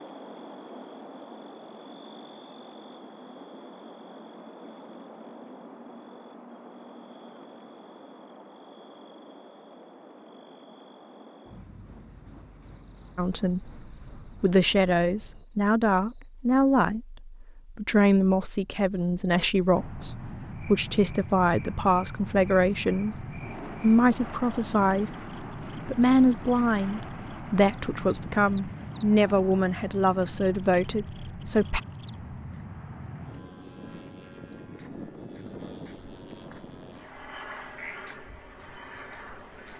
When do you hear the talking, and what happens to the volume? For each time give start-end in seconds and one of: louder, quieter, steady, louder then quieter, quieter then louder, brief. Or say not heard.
13.2-25.1 steady
25.9-31.8 steady.